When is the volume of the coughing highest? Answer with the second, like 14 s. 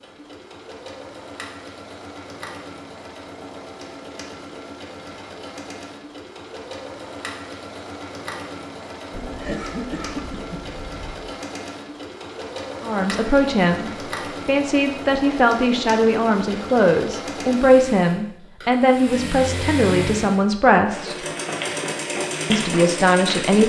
10 s.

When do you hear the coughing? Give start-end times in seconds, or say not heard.
9.1-11.2.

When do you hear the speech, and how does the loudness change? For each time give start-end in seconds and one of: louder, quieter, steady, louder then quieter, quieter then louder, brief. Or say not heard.
12.8-21.1 steady
22.5-23.6 brief.